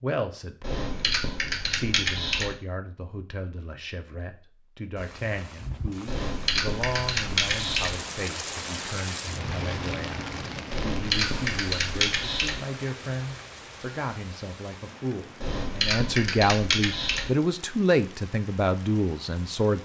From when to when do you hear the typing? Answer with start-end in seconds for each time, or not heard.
0.6-2.5, 6.0-8.0, 10.7-12.6, 15.4-17.3.